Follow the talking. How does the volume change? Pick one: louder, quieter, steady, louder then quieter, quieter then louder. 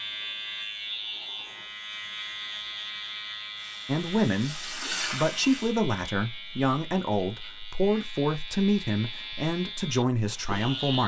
steady.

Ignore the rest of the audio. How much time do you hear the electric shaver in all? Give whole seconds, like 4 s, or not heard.
11 s.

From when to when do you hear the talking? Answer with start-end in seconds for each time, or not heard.
3.9-11.0.